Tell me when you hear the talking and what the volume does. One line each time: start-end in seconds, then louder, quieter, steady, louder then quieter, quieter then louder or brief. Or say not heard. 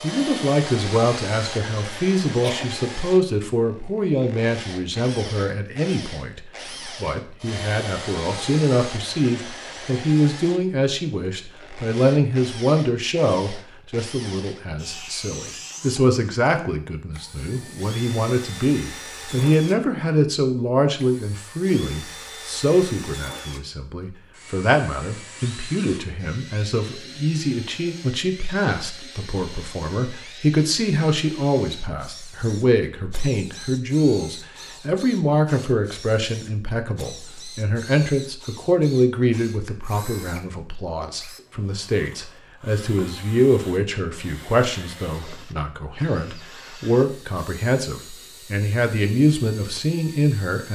0.0-50.6 steady.